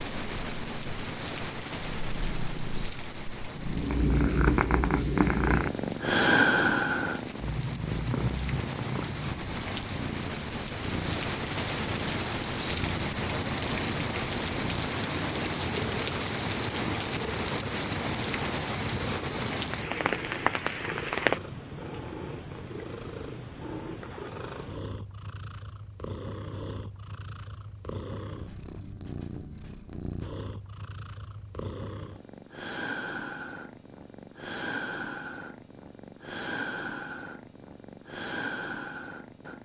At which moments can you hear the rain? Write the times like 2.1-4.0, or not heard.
0.0-21.4.